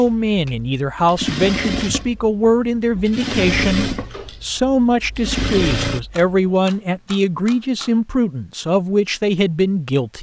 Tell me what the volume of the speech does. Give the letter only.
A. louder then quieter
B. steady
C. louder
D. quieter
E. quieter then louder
B.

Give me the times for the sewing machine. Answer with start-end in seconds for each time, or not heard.
0.0-6.3.